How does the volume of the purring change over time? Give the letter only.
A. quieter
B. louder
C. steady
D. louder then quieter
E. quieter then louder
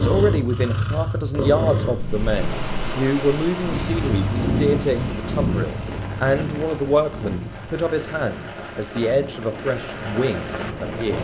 A.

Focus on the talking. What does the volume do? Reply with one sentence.
The loudness of the talking stays about the same.